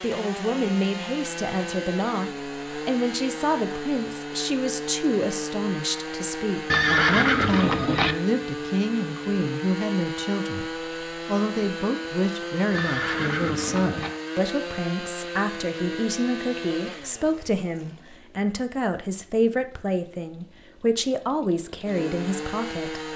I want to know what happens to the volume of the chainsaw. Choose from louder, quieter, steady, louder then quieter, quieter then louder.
quieter.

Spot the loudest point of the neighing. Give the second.
7 s.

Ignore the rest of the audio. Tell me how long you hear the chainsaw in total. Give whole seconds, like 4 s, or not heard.
23 s.